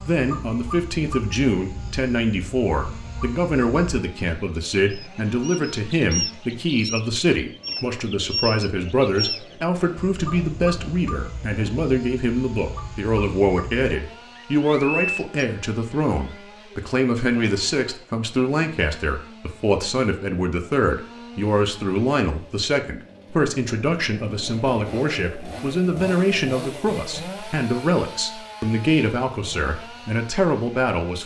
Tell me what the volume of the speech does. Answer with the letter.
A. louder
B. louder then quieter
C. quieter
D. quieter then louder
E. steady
E.